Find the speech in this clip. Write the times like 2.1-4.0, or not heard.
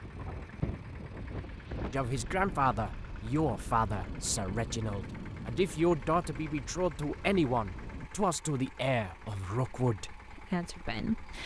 1.9-11.4.